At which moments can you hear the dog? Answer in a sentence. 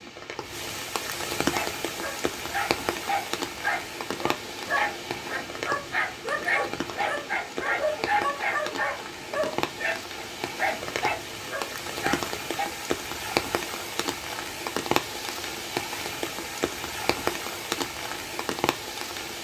The dog can be heard from 1.4 to 12.7 s.